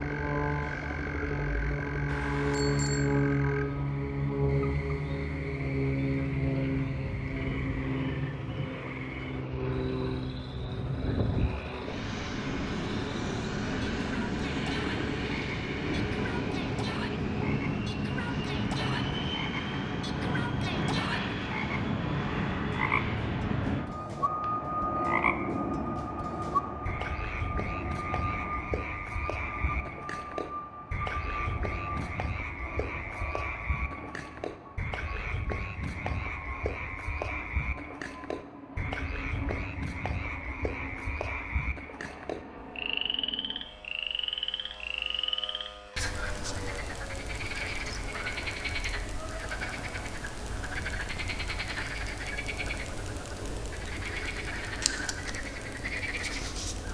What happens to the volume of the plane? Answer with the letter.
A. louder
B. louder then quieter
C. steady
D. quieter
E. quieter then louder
D.